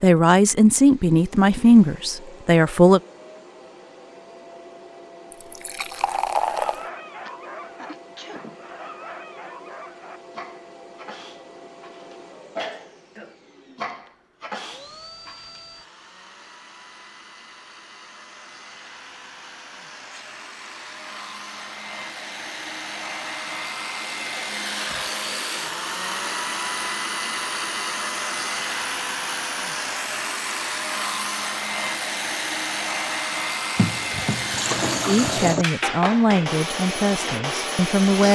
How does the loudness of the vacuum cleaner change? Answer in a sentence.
The volume of the vacuum cleaner goes up.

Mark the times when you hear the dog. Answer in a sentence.
The dog can be heard from 6.0 to 15.6 s.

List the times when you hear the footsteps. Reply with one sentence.
The footsteps can't be heard in this clip.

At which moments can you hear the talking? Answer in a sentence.
You can hear the talking from 0.0 to 3.0 s and from 35.0 to 38.2 s.